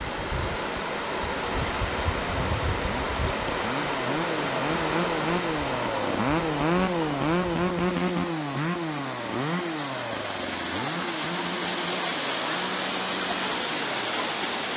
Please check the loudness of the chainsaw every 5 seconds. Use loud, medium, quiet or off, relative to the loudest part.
medium, loud, medium.